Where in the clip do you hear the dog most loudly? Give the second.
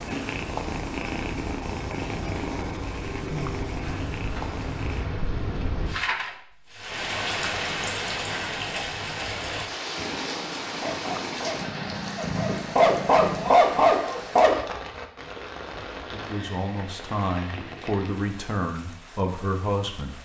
14 s.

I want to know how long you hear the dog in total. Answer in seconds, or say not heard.
4 s.